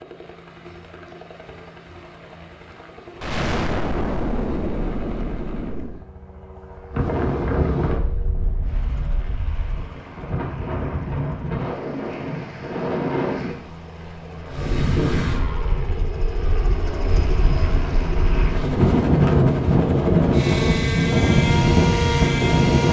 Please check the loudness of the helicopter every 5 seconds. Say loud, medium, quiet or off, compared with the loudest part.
quiet, quiet, quiet, loud, loud.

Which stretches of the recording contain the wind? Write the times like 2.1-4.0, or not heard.
6.9-22.8.